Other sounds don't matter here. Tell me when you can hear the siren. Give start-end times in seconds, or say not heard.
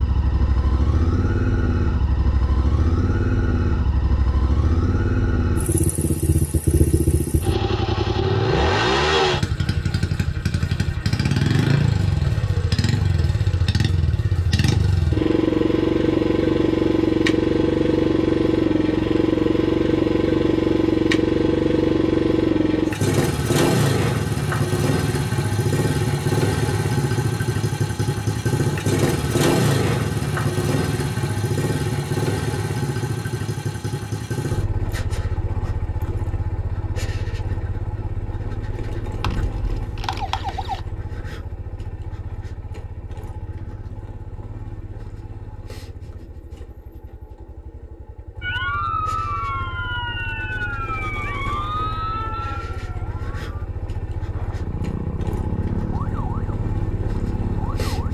39.2-40.9, 48.4-58.0.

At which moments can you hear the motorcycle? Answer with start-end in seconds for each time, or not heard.
0.0-58.0.